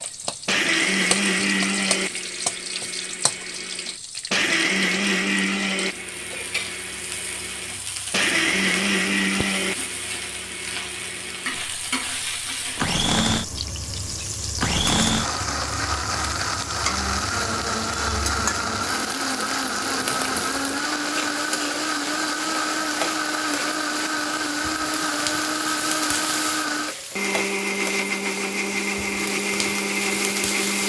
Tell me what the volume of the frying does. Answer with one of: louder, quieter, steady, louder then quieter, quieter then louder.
steady.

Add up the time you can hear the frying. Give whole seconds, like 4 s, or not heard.
31 s.